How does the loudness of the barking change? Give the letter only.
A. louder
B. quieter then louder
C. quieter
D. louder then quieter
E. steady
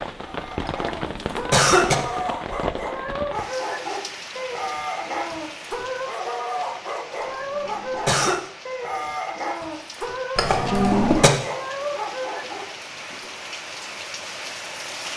E.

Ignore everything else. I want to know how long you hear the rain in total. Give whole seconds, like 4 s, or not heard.
15 s.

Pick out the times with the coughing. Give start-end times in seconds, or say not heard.
0.7-1.9, 7.2-8.4, 10.3-11.3.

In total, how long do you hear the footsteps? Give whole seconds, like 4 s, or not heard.
not heard.